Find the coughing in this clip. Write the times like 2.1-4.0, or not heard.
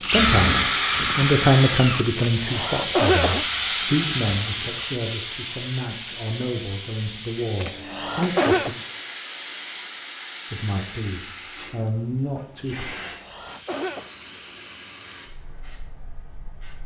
2.4-3.5, 7.6-8.7, 13.0-14.1.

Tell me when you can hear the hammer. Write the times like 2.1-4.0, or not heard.
not heard.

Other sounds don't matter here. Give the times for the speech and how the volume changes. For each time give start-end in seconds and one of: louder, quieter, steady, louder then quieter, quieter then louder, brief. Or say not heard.
0.0-8.8 quieter
10.5-12.9 brief.